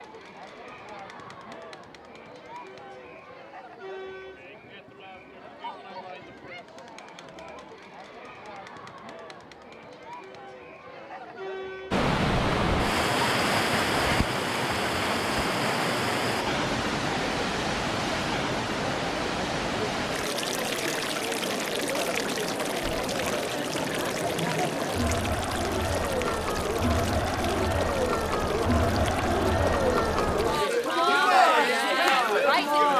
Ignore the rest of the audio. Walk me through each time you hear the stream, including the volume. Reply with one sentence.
You can hear the stream from 11.9 to 32.9 s, getting quieter.